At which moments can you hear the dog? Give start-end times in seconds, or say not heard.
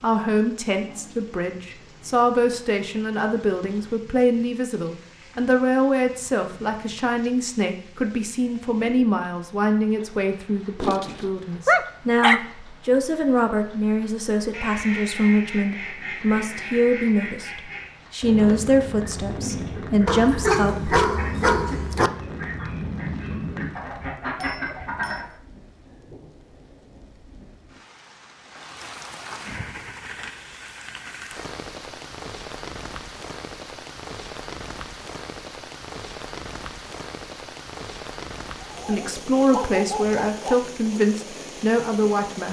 10.8-12.4, 20.1-22.1, 38.6-40.5.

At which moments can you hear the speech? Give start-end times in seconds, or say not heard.
0.0-20.9, 38.9-42.4.